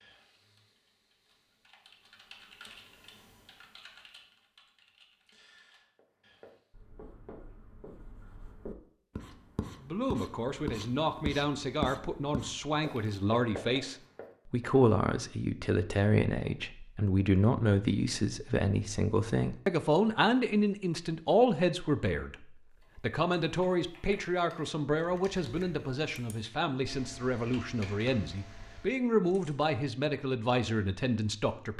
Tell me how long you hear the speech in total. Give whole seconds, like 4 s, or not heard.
22 s.